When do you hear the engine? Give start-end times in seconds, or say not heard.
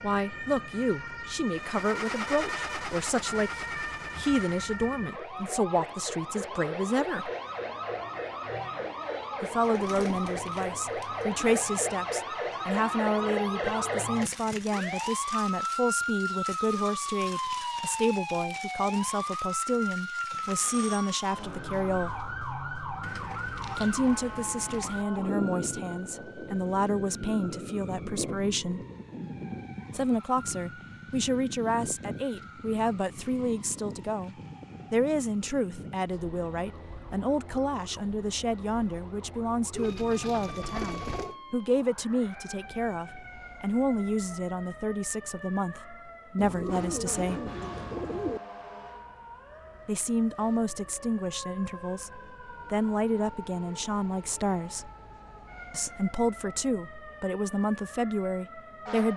1.4-5.0.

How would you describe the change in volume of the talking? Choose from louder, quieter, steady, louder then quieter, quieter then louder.
steady.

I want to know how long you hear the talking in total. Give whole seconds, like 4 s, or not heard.
51 s.